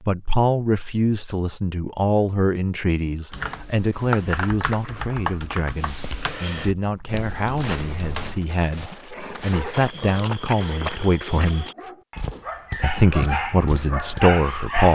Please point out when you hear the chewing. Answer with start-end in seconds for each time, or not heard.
not heard.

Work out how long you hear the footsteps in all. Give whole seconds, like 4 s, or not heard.
8 s.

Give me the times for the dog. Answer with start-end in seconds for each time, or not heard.
9.1-14.9.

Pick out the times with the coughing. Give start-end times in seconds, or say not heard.
not heard.